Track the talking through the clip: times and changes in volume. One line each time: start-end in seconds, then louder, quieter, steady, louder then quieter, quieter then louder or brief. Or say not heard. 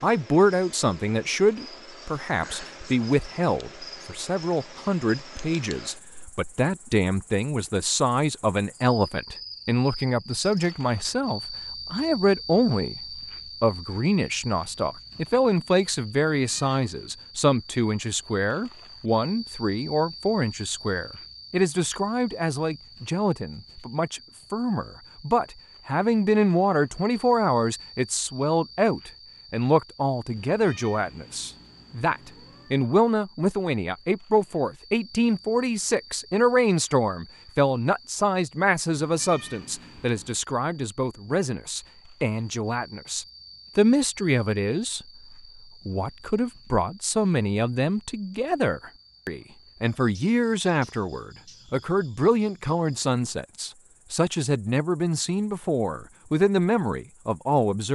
0.0-45.0 steady
45.9-57.9 steady.